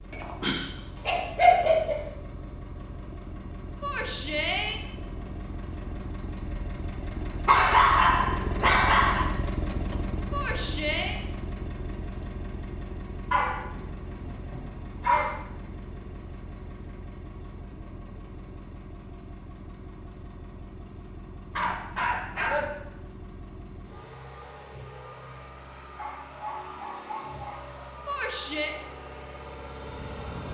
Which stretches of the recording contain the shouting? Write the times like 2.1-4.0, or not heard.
3.8-4.8, 10.3-11.2, 28.1-28.8.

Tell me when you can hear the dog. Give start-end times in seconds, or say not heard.
0.1-2.0, 7.5-9.2, 13.3-15.3, 21.5-22.6, 25.8-28.1.